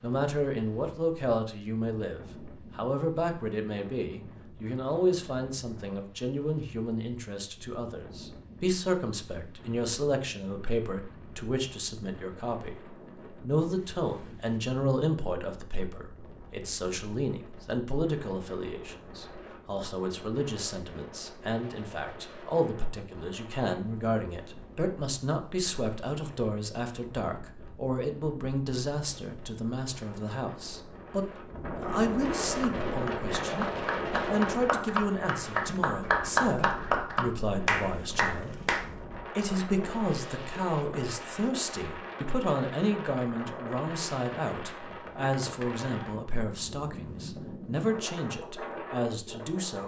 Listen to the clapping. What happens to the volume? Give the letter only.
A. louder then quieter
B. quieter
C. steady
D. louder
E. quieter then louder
D.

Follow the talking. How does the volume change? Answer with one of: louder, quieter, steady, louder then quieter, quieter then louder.
steady.